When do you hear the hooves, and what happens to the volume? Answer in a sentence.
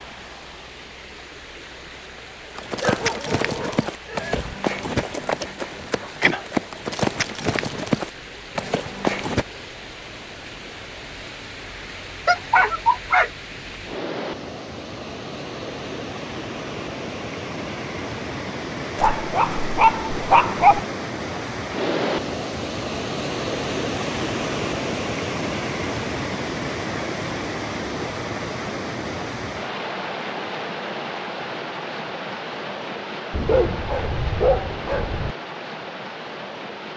The hooves can be heard from 2.5 to 9.4 s, at a steady volume.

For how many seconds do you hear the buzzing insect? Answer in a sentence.
You can't hear the buzzing insect here.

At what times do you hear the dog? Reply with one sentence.
You can hear the dog from 2.8 to 4.5 s, from 12.2 to 13.3 s, from 18.9 to 20.8 s and from 33.3 to 35.4 s.